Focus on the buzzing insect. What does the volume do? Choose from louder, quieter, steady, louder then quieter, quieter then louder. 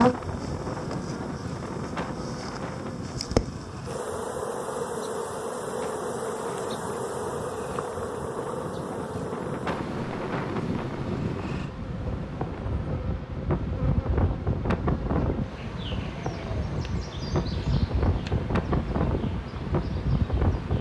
quieter.